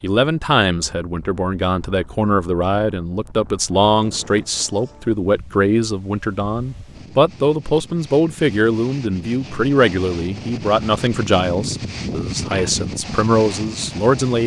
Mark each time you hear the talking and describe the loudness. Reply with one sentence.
The talking can be heard from 0.0 to 14.4 s, at a steady volume.